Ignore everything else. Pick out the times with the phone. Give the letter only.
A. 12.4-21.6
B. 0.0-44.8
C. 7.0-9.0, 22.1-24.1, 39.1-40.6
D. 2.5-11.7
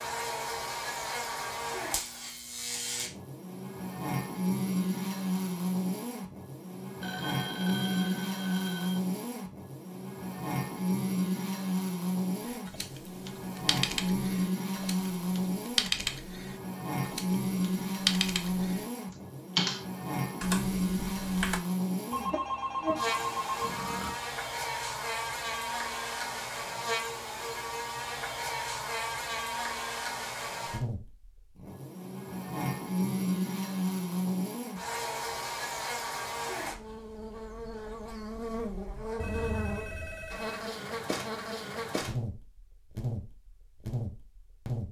C.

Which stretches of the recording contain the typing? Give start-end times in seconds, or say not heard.
12.4-21.6.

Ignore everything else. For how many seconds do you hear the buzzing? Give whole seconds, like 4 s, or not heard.
45 s.